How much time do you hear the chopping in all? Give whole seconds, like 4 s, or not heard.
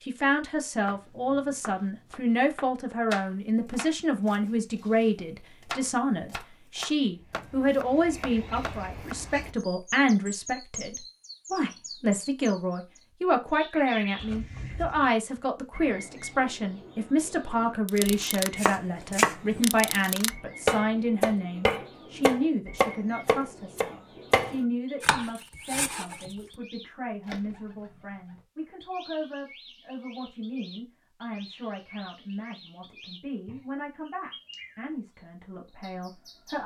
17 s.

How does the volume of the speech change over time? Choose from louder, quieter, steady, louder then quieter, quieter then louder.
quieter.